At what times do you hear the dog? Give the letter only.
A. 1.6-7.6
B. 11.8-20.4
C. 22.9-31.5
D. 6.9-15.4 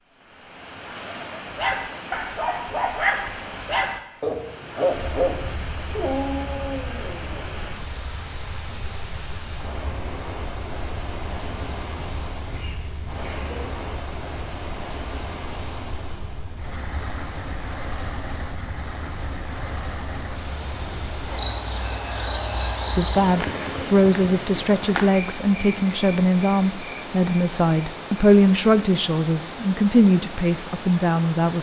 A.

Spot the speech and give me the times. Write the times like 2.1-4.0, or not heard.
22.9-31.5.